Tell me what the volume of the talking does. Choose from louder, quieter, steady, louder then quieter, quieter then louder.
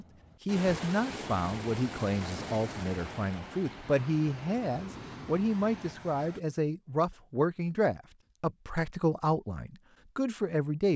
steady.